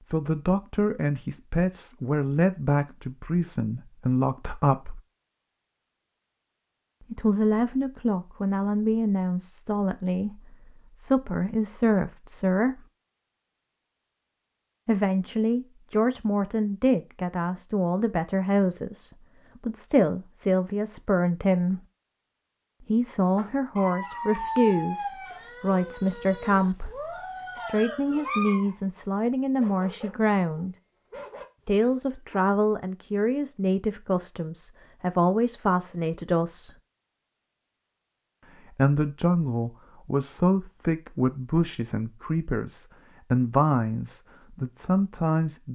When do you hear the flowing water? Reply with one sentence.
The flowing water can't be heard in this clip.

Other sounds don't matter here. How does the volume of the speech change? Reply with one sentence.
The loudness of the speech stays about the same.